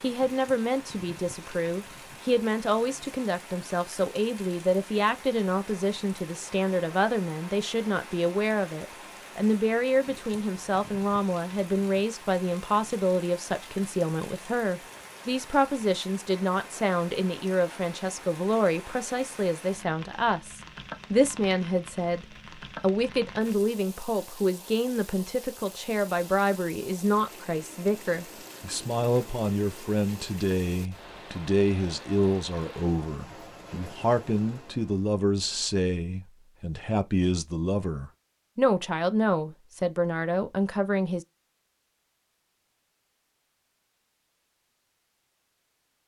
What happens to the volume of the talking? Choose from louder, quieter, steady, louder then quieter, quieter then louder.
steady.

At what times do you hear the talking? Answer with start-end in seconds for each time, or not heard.
0.0-41.2.